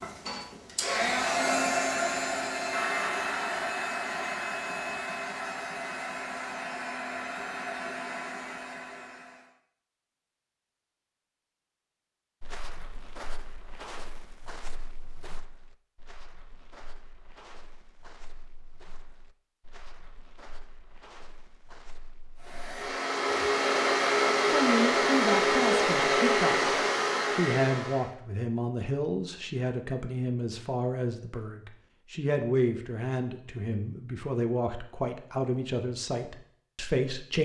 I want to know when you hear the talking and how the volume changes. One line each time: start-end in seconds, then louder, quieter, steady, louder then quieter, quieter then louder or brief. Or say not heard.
24.5-26.7 brief
27.3-37.4 steady.